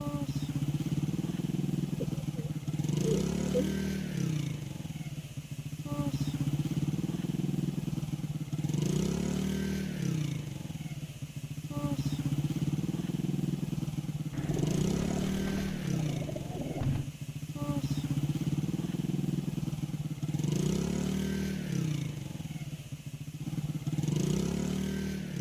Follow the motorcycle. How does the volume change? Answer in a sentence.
The volume of the motorcycle stays about the same.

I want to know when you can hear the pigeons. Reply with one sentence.
You can hear the pigeons from 2.0 to 3.8 s and from 14.3 to 17.1 s.